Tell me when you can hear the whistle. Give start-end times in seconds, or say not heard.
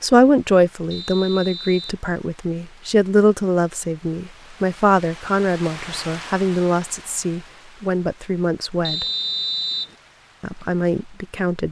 0.9-2.0, 8.8-9.9.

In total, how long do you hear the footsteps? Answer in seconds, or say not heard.
not heard.